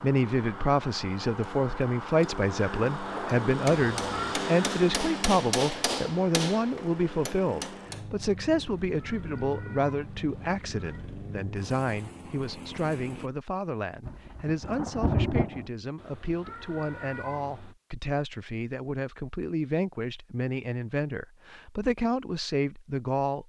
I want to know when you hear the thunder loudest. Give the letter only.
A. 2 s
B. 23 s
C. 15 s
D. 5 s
C.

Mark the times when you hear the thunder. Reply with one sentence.
You can hear the thunder from 14.0 to 15.7 s.